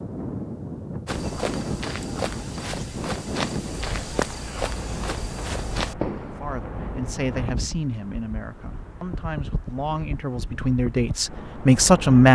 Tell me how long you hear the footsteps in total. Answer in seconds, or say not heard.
5 s.